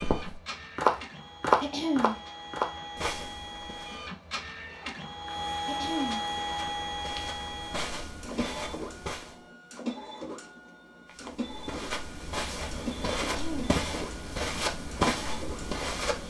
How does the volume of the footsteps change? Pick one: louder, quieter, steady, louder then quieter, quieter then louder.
quieter then louder.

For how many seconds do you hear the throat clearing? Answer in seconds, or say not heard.
2 s.